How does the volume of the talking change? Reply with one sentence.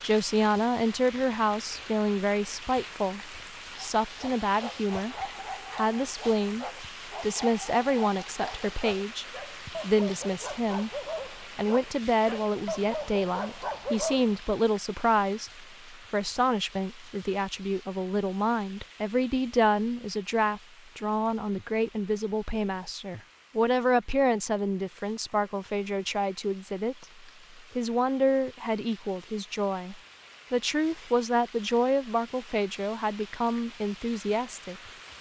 The loudness of the talking stays about the same.